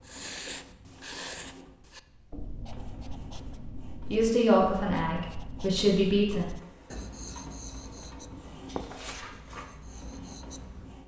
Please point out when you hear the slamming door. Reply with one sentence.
You can't hear the slamming door here.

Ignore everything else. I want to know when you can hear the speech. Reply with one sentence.
The speech can be heard from 4.0 to 6.5 s.